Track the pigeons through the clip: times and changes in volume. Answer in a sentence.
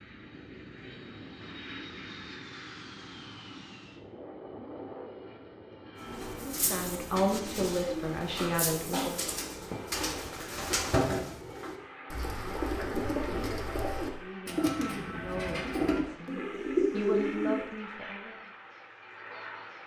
You can hear the pigeons from 6.0 to 17.7 s, getting louder.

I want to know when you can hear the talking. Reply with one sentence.
The talking can be heard from 6.5 to 9.2 s and from 14.1 to 18.5 s.